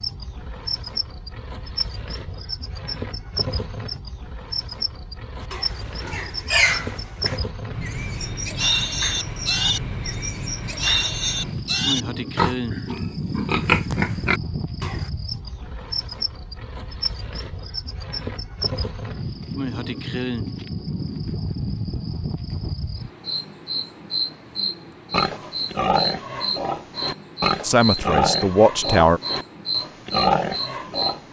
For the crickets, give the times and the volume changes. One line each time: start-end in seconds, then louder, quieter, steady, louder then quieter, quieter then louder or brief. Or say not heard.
0.0-31.2 steady.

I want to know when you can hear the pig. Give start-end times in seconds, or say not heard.
5.4-15.1, 25.1-31.2.